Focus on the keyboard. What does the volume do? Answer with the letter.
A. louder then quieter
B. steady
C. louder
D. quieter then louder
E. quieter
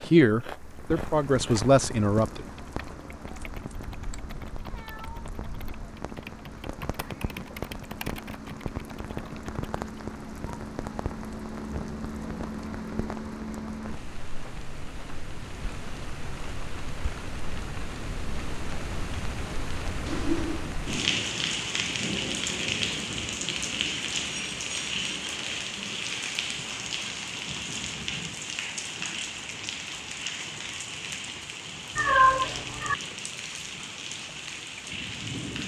A.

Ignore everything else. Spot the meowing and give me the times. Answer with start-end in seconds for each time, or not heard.
3.3-5.3, 20.1-20.7, 31.9-33.0.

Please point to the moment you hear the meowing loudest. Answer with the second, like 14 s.
32 s.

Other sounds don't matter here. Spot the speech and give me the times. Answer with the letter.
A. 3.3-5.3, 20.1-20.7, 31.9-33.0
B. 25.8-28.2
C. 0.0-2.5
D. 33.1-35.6
C.